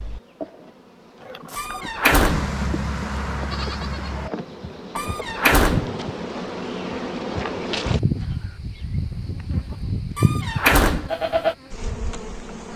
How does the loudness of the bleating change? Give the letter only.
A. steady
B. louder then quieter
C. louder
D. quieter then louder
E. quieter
C.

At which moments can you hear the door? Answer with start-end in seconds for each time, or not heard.
1.6-2.5, 5.0-5.9, 10.2-11.1.